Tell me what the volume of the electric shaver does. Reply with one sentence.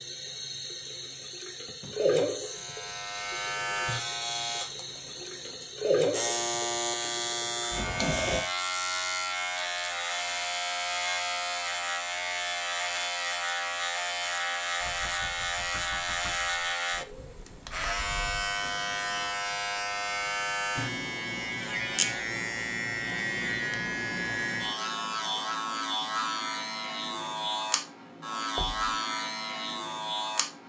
The volume of the electric shaver stays about the same.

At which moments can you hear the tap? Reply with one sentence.
You can hear the tap from 0.0 to 8.4 s.